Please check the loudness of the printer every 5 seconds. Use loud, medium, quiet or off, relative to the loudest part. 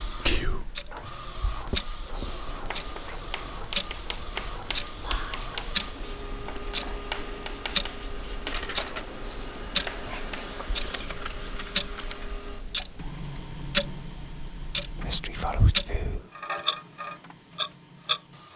loud, loud, loud, medium.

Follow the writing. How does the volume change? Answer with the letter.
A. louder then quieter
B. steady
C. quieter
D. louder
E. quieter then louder
B.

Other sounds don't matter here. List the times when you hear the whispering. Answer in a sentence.
You can hear the whispering from 0.2 to 0.7 s, from 5.0 to 5.5 s, from 10.1 to 11.8 s and from 15.0 to 16.2 s.